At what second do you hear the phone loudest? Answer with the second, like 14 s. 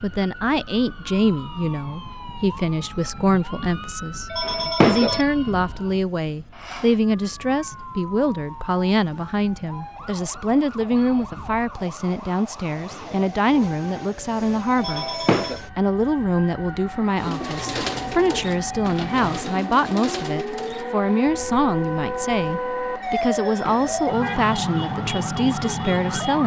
5 s.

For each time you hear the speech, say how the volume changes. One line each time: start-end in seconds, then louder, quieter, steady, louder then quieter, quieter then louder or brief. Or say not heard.
0.0-26.4 steady.